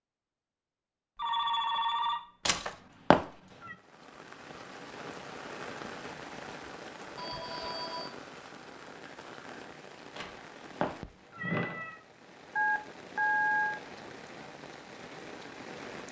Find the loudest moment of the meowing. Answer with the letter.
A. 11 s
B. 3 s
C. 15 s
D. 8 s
B.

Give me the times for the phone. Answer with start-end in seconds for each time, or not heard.
1.1-2.7, 7.2-8.1, 12.6-13.8.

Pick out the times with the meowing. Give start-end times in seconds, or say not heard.
2.5-3.8, 10.2-12.0.